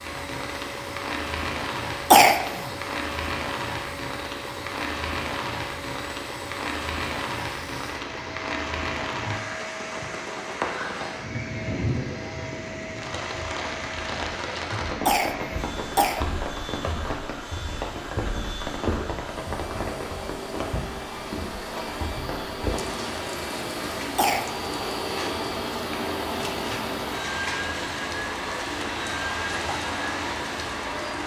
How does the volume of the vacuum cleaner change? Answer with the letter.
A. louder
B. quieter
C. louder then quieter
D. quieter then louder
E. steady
A.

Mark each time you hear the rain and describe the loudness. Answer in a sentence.
You can hear the rain from 0.0 to 31.2 s, at a steady volume.